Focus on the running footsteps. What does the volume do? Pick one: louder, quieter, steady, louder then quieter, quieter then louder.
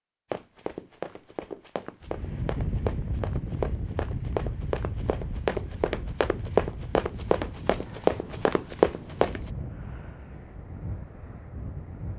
louder.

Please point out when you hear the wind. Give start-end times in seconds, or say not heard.
2.0-12.1.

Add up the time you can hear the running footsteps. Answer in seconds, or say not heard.
9 s.